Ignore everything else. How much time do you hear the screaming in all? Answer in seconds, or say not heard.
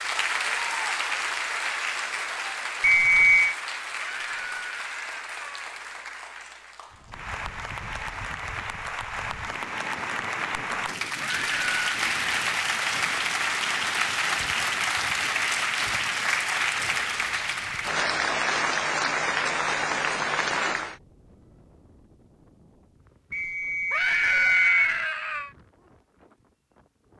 4 s.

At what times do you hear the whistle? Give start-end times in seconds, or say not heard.
2.8-3.5, 23.3-24.9.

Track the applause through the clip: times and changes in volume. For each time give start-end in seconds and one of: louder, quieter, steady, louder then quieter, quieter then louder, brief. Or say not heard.
0.0-21.0 quieter then louder.